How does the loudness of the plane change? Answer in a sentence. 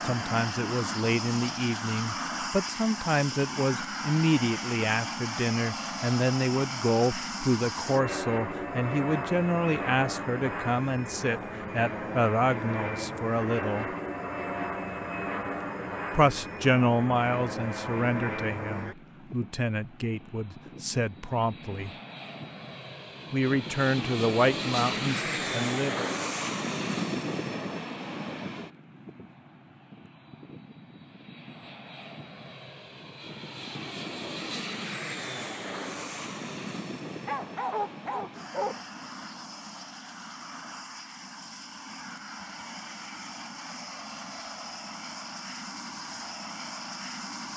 The loudness of the plane goes down.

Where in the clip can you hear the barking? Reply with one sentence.
You can hear the barking from 37.2 to 38.8 s.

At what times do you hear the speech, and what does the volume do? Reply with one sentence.
The speech can be heard from 0.0 to 13.9 s, at a steady volume; from 16.1 to 21.9 s, getting quieter then louder; and briefly from 23.3 to 26.1 s.